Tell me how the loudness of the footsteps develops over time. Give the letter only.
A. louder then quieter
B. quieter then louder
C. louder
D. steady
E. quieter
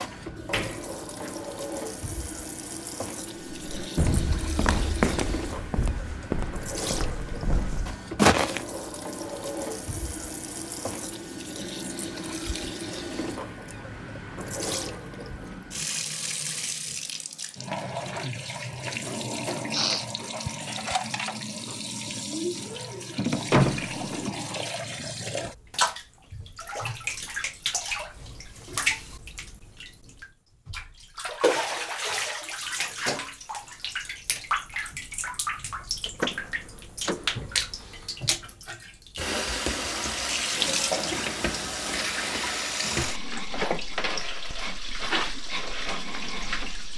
B.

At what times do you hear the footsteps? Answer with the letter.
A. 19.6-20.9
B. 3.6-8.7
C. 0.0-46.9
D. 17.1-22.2
B.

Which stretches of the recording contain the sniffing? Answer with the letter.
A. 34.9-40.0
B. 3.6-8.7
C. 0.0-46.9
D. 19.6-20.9
D.